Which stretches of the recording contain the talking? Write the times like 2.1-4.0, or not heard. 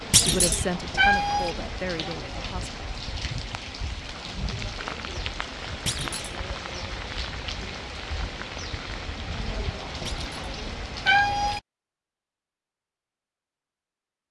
0.1-2.8.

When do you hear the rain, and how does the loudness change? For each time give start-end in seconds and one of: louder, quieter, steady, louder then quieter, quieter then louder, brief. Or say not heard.
0.0-11.6 steady.